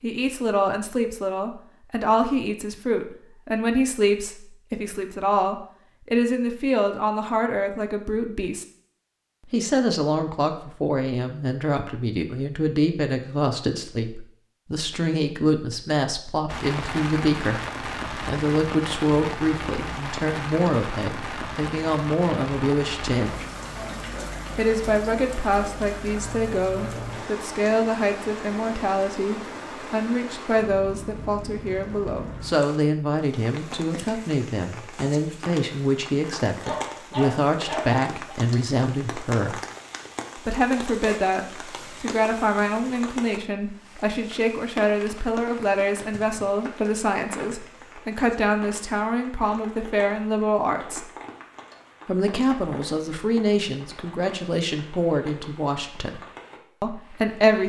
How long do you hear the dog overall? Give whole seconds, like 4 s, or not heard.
2 s.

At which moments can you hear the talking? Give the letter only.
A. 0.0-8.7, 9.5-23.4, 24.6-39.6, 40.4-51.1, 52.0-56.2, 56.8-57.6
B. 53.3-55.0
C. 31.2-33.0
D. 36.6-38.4
A.